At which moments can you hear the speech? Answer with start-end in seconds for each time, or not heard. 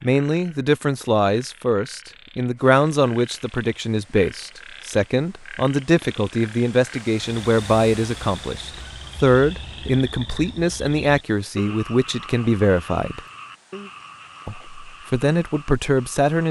0.0-13.2, 14.4-16.4.